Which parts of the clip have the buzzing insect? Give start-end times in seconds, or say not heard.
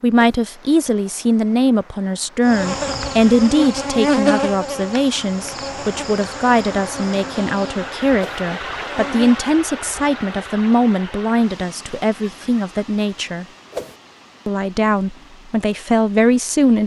2.5-9.3.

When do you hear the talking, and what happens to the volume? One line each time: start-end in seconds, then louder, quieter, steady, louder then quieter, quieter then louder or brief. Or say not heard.
0.0-13.4 steady
14.4-16.8 brief.